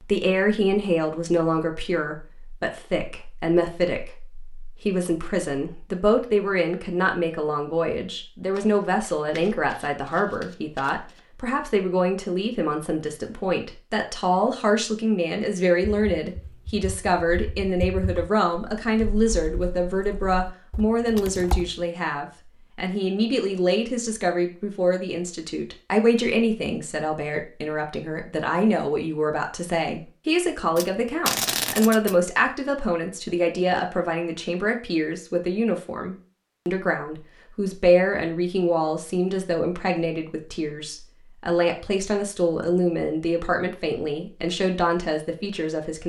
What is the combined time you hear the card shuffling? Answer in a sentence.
You can hear the card shuffling for 4 seconds altogether.